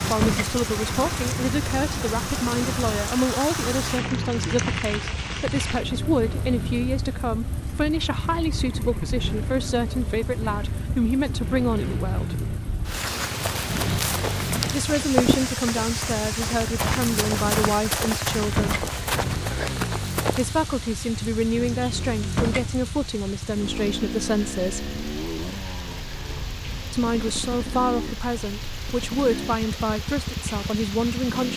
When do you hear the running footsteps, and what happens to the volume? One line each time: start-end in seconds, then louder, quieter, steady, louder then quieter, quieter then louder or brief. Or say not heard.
13.4-20.4 steady.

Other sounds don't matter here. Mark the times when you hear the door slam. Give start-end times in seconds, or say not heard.
0.1-0.6, 18.4-18.9, 22.2-22.7.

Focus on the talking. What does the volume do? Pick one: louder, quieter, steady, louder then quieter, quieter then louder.
steady.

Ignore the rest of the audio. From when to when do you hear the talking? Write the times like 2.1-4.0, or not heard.
0.1-12.3, 14.7-18.9, 20.3-24.9, 26.9-31.5.